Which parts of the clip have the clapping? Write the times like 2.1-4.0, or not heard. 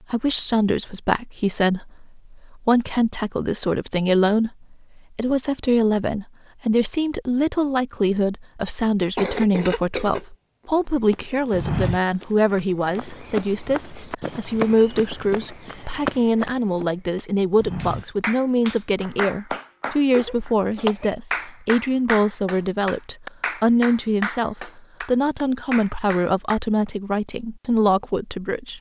17.8-26.6.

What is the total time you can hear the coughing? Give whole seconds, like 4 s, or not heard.
2 s.